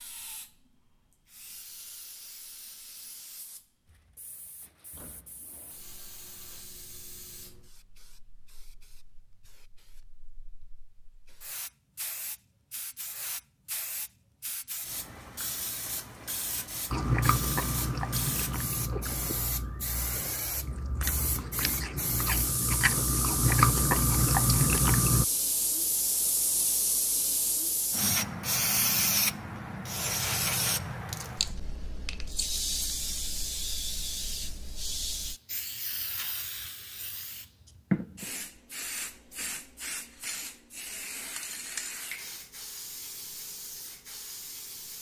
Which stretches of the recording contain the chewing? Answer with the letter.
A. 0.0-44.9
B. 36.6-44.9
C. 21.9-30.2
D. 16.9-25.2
D.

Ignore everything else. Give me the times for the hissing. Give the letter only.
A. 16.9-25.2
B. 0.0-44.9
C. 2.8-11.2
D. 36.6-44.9
B.